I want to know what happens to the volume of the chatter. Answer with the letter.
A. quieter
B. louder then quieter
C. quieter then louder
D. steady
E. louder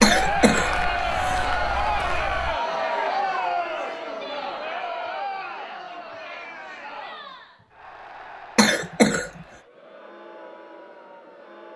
A.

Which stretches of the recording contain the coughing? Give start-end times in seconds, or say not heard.
0.0-1.5, 8.6-9.4.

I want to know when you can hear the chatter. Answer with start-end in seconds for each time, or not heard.
0.0-11.7.